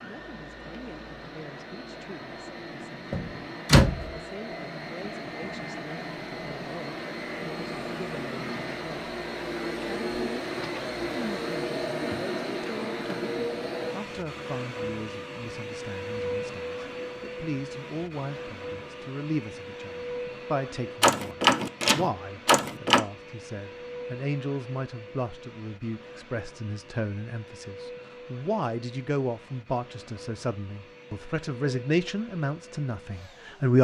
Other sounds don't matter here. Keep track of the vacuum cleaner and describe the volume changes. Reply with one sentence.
The loudness of the vacuum cleaner goes up, then down.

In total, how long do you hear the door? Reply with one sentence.
You can hear the door for 3 seconds altogether.